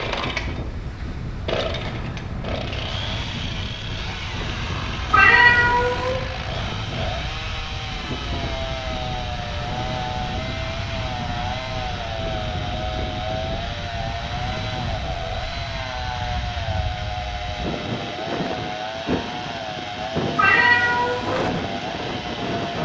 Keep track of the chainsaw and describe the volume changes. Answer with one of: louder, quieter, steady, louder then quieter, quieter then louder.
steady.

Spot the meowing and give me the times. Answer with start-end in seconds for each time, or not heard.
5.1-6.2, 20.4-21.4.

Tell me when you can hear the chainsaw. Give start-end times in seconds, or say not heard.
0.0-22.8.